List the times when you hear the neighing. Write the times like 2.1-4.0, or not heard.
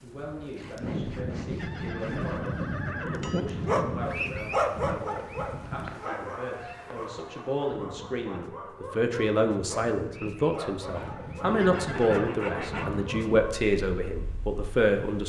1.6-3.5, 11.6-12.3.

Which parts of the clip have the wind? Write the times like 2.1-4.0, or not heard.
0.0-15.2.